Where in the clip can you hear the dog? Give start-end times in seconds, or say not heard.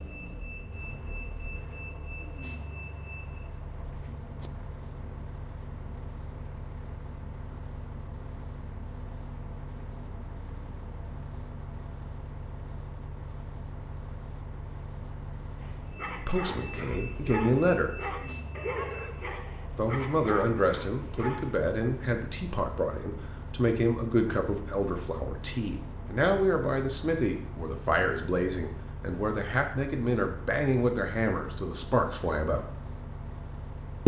15.6-21.6.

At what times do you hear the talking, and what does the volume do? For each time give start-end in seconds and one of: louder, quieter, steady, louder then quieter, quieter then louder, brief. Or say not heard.
16.2-17.9 brief
19.8-32.6 steady.